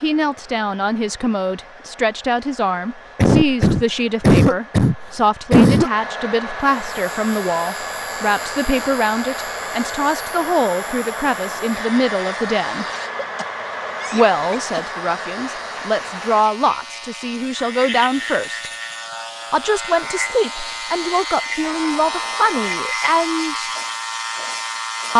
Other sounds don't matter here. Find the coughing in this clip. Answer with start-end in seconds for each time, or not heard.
3.1-5.9, 13.2-14.9.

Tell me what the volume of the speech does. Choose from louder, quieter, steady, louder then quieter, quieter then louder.
steady.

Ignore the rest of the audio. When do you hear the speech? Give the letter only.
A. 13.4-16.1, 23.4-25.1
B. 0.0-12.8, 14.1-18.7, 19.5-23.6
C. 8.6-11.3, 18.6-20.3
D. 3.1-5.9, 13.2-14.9
B.